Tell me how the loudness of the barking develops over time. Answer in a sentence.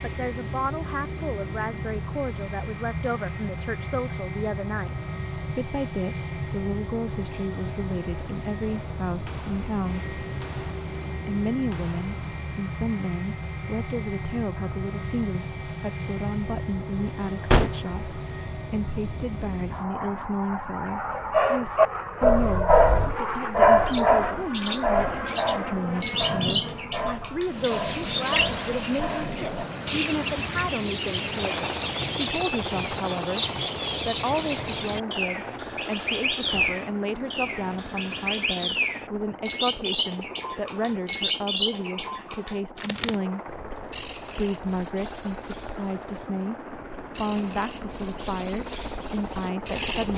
The volume of the barking goes down.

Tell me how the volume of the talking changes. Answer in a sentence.
The loudness of the talking stays about the same.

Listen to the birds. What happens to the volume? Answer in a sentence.
The volume of the birds goes down.